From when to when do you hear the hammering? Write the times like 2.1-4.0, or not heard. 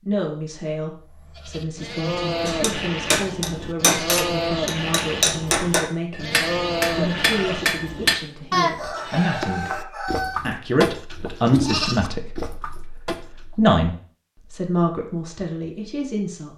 2.5-8.2.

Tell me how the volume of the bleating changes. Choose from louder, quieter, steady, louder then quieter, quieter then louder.
steady.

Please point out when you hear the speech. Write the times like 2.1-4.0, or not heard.
0.1-6.3, 6.9-16.5.